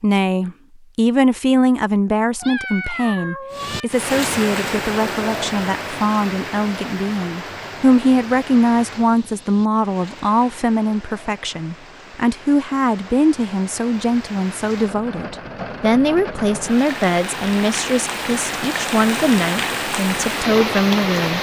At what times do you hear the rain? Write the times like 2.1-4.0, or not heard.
3.5-21.3.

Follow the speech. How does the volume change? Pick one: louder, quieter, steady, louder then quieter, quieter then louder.
steady.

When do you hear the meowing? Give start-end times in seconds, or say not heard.
2.4-3.9.